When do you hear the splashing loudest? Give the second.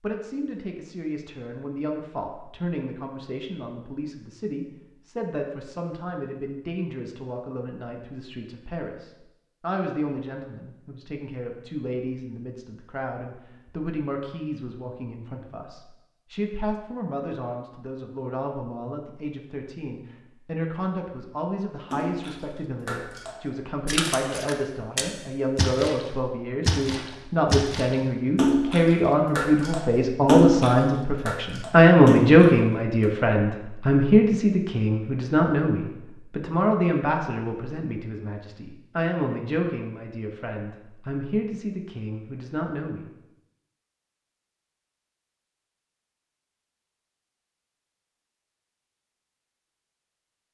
30 s.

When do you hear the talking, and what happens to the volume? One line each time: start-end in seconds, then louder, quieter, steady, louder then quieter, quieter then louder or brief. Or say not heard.
0.0-43.1 louder then quieter.